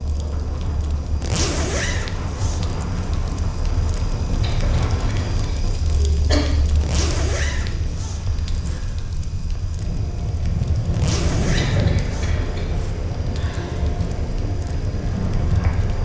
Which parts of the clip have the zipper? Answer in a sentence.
You can hear the zipper from 1.2 to 2.8 s, from 6.8 to 8.8 s and from 10.9 to 12.9 s.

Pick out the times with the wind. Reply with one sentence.
You can hear the wind from 0.0 to 16.0 s.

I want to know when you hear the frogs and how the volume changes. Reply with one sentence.
The frogs can't be heard in this clip.